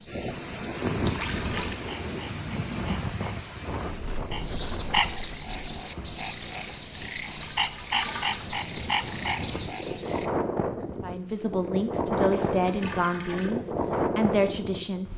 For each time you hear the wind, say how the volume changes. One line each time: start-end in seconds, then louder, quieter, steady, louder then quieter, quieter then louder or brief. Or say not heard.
0.0-15.1 quieter then louder.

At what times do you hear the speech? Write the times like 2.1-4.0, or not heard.
11.0-15.1.